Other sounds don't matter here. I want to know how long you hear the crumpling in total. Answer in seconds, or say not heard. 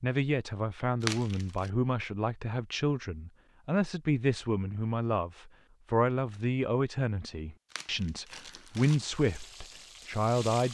2 s.